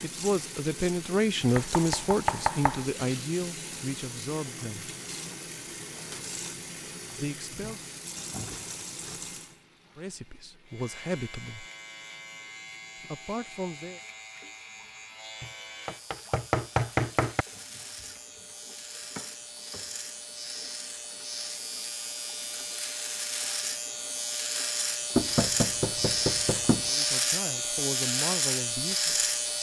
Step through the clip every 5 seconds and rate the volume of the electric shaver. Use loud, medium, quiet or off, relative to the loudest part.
off, off, quiet, quiet, medium, loud.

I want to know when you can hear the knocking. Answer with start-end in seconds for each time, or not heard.
1.6-2.9, 15.4-17.4, 25.1-26.9.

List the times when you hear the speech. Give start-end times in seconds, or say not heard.
0.0-4.9, 7.2-7.8, 9.9-11.7, 13.1-14.0, 26.9-29.1.